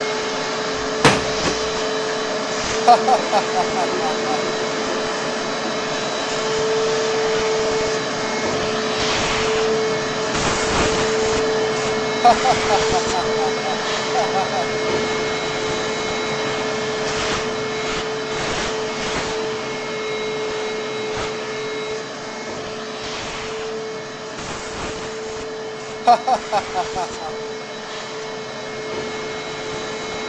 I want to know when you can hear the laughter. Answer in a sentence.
You can hear the laughter from 2.9 to 4.2 s, from 12.2 to 14.7 s and from 26.1 to 27.3 s.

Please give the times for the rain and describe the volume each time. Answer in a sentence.
The rain can't be heard in this clip.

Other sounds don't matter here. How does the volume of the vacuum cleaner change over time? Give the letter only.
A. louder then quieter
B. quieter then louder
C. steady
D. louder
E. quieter
E.